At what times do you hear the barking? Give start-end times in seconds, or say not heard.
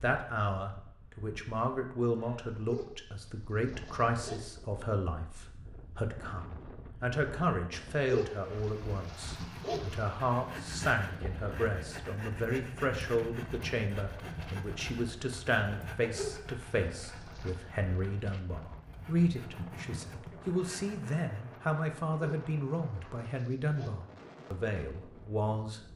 2.5-4.5, 7.9-10.0, 16.1-17.6, 22.1-23.9.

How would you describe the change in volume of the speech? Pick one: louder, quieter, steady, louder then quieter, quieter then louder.
steady.